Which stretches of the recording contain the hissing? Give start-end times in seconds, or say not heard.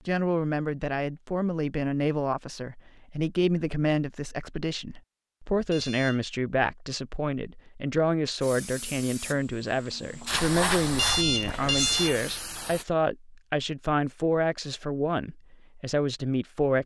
8.4-12.8.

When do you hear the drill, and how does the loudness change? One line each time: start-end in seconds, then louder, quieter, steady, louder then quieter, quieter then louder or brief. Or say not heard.
not heard.